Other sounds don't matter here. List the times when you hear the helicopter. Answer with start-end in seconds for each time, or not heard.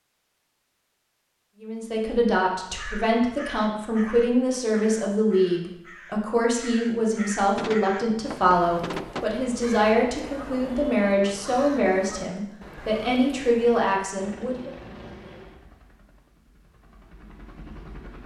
14.2-18.2.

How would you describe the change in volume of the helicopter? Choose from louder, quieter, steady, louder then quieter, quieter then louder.
quieter then louder.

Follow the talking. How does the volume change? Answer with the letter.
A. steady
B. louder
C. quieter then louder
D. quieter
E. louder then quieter
A.